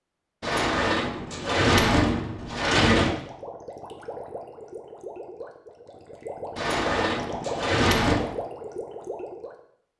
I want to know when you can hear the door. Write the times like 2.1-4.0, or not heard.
0.4-3.2, 6.5-8.2.